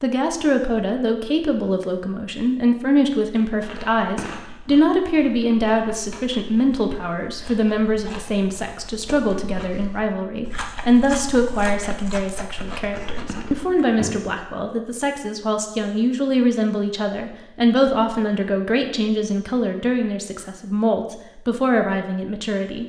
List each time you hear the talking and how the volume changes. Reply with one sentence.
You can hear the talking from 0.0 to 22.8 s, at a steady volume.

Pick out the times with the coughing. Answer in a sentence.
You can't hear the coughing here.